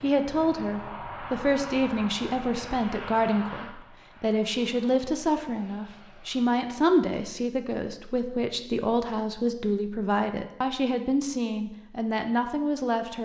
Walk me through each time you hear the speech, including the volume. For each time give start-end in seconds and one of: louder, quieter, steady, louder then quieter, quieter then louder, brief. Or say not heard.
0.0-13.2 steady.